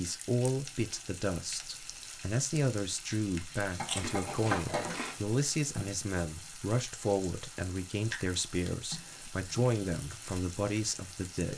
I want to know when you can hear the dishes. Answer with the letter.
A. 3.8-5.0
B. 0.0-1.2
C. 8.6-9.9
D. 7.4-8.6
A.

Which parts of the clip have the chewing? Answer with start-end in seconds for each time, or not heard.
3.9-5.2.